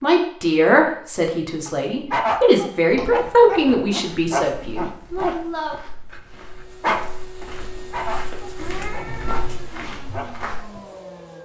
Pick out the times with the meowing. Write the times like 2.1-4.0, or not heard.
8.6-9.4.